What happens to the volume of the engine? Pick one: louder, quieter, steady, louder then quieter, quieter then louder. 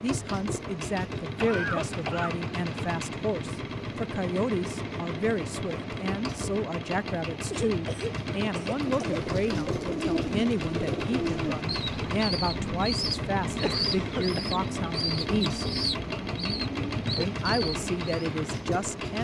steady.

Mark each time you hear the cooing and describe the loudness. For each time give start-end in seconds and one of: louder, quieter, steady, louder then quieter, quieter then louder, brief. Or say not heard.
8.8-18.3 steady.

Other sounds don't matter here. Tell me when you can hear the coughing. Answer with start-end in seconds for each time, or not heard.
1.4-2.4, 7.5-9.2, 13.6-14.4.